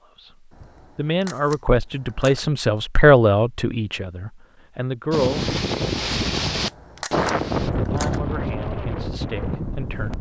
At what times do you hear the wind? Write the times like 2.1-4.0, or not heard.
5.1-10.1.